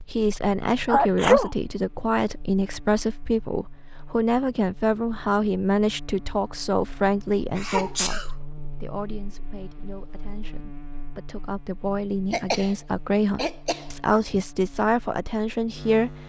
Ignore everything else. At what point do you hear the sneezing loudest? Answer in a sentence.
The volume of the sneezing peaks at 1 second.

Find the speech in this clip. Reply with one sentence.
You can hear the speech from 0.1 to 16.1 s.